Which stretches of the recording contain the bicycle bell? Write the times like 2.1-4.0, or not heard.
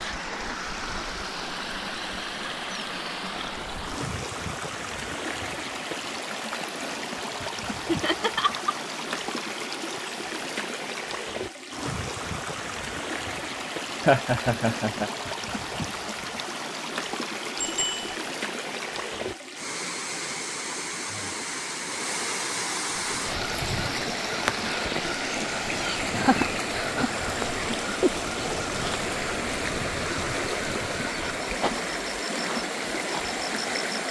17.6-18.1.